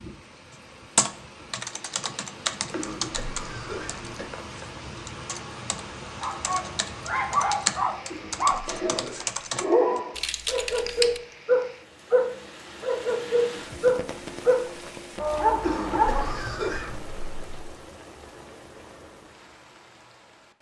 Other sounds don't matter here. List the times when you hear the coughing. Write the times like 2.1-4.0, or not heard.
2.7-4.3, 8.1-9.4, 15.6-17.0.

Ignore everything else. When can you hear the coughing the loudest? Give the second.
16 s.